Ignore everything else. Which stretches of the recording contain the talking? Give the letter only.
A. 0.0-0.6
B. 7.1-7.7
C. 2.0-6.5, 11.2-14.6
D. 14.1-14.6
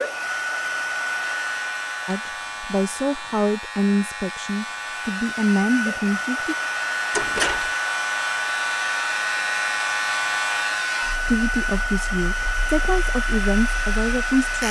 C.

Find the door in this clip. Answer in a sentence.
The door can be heard from 7.1 to 7.7 s.